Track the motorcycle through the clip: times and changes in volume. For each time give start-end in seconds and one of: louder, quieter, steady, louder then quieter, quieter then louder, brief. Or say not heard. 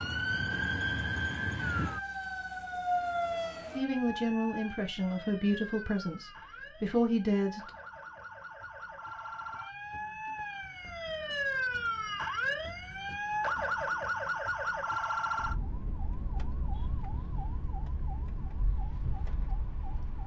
not heard.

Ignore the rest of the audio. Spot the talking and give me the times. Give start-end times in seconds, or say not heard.
3.8-7.7.